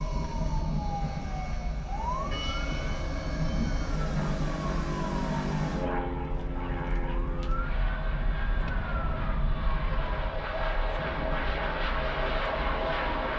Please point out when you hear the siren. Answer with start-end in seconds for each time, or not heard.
0.0-13.3.